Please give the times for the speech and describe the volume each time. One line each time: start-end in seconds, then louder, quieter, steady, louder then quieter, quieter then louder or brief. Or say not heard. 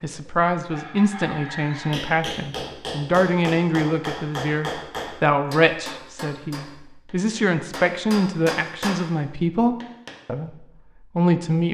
0.0-11.6 steady.